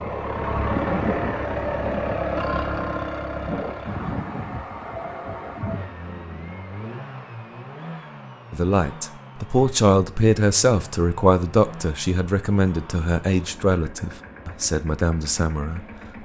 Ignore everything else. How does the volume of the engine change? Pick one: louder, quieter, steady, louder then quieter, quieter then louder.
quieter.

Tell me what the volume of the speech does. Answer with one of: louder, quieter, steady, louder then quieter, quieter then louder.
quieter.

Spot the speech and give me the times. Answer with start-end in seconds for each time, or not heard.
8.5-16.2.